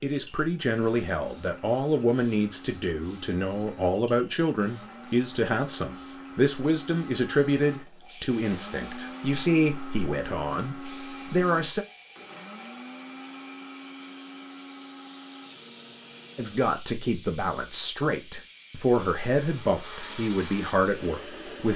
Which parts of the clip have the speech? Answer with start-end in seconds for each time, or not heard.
0.0-11.8, 16.4-21.7.